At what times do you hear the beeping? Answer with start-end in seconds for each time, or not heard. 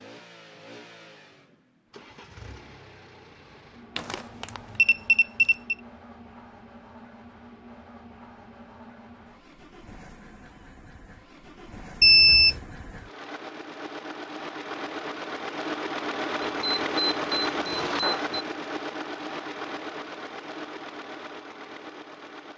4.0-5.8, 12.0-12.6, 16.4-18.4.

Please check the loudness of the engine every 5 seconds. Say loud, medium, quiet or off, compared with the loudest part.
quiet, quiet, medium, loud, medium.